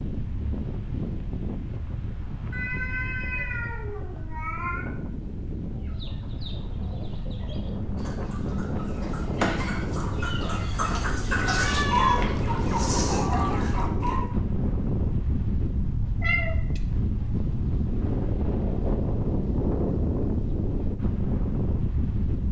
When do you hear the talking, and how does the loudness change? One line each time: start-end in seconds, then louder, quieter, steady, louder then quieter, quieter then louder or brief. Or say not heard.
not heard.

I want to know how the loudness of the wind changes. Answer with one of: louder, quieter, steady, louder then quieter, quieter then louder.
louder.